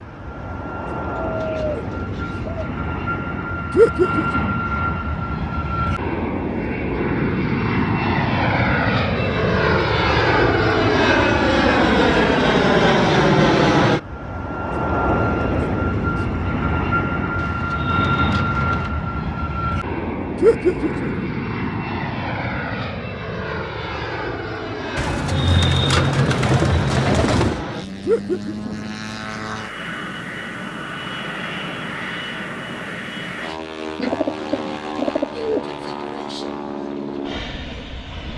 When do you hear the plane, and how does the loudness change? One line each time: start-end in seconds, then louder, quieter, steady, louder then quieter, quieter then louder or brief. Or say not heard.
0.0-38.3 louder then quieter.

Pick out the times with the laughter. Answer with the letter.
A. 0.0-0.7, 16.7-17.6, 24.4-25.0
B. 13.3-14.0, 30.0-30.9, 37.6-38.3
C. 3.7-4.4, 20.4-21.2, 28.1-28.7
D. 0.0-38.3
C.